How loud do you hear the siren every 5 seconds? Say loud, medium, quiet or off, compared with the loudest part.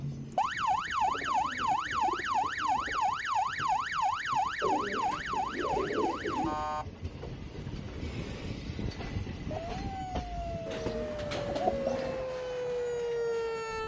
loud, medium, medium.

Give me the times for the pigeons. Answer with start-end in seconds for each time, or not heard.
1.1-3.0, 4.6-6.5, 10.7-12.2.